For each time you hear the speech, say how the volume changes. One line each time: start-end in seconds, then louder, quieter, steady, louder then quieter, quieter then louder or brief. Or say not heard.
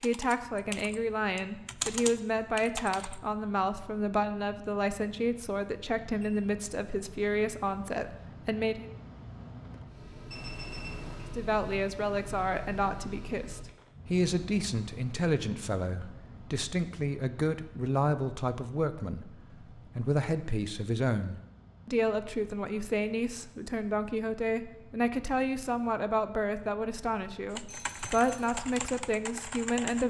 0.0-8.8 steady
11.3-30.0 steady.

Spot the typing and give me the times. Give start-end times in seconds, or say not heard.
0.0-3.2, 27.5-30.0.